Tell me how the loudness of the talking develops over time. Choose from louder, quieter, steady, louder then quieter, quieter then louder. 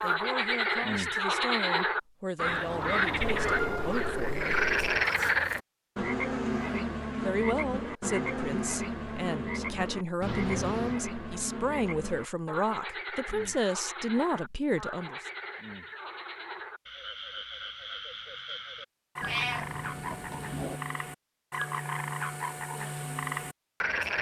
louder.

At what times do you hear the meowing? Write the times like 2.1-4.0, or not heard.
3.2-5.1, 10.2-11.0, 19.2-20.8.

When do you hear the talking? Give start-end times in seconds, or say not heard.
0.0-4.7, 7.2-15.2.